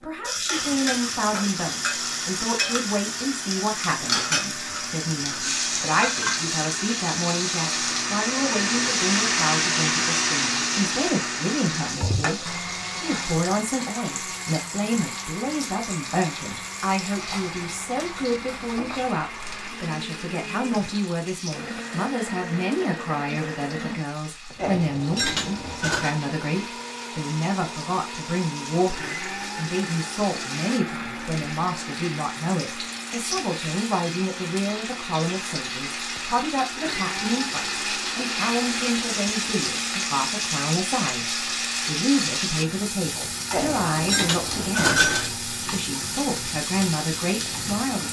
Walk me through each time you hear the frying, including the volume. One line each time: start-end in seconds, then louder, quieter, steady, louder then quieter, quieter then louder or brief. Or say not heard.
0.0-48.0 quieter then louder.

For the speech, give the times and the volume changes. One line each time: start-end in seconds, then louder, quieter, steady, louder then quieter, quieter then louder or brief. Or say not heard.
0.0-48.0 steady.